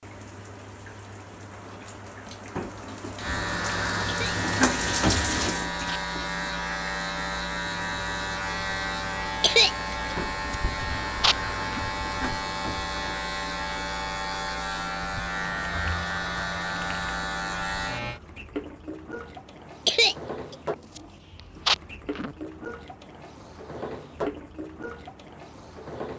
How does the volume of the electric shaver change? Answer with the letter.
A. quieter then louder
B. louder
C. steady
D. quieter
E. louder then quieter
C.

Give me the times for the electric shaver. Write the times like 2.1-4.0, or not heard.
3.1-18.2.